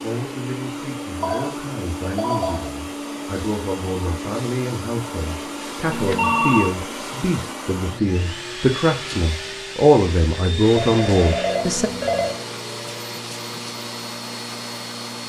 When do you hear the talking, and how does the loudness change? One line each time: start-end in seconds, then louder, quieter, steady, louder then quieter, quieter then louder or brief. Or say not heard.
0.0-11.9 louder.